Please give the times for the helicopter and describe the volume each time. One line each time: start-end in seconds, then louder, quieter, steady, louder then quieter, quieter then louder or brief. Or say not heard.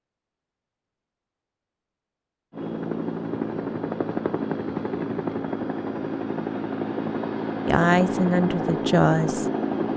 2.5-9.9 steady.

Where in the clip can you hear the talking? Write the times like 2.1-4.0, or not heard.
7.7-9.4.